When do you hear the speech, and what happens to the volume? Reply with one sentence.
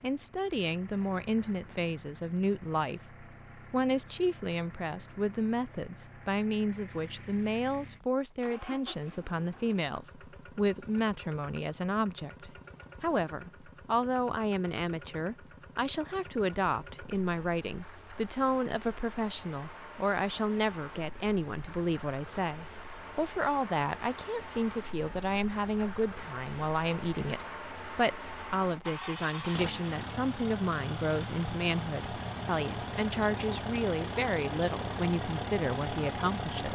The speech can be heard from 0.0 to 36.7 s, at a steady volume.